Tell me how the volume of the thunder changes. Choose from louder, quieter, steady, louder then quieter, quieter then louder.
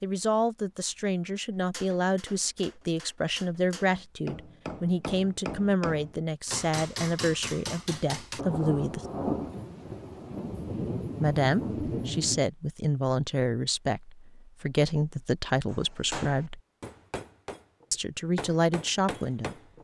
quieter then louder.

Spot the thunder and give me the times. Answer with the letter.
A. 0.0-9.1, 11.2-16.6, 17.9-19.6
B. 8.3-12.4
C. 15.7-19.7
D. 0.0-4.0
B.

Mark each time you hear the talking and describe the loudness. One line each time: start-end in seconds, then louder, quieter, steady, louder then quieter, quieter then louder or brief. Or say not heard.
0.0-9.1 steady
11.2-16.6 steady
17.9-19.6 brief.